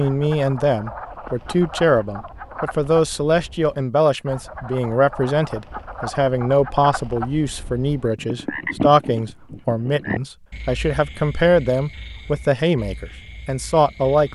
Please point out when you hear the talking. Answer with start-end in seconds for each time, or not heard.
0.0-14.3.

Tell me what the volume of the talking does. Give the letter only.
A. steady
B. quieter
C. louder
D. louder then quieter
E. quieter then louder
A.